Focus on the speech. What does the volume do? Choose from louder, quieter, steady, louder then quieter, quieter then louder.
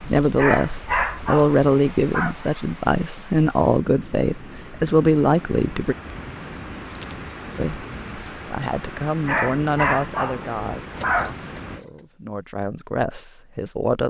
quieter.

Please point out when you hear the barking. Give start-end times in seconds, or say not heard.
0.3-2.4, 9.2-11.3.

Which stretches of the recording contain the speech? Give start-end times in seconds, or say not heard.
0.1-6.0, 7.5-14.0.